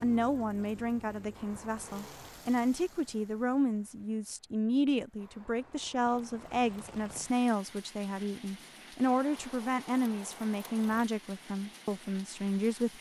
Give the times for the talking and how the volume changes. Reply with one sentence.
The talking can be heard from 0.0 to 12.9 s, at a steady volume.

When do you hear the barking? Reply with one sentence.
The barking can't be heard in this clip.